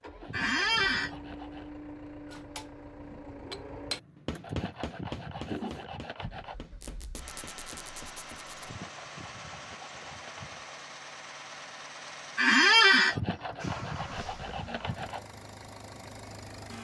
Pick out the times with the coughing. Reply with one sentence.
The coughing can't be heard in this clip.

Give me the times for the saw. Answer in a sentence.
The saw can be heard from 0.2 to 1.7 s, from 4.4 to 6.5 s, from 8.6 to 10.8 s and from 13.1 to 15.2 s.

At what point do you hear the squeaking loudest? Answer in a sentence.
The volume of the squeaking peaks at 13 seconds.